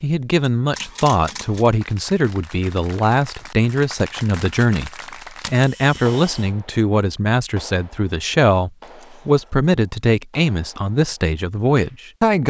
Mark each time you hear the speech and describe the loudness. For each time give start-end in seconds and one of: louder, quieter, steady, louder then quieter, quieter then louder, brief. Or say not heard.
0.0-12.4 steady.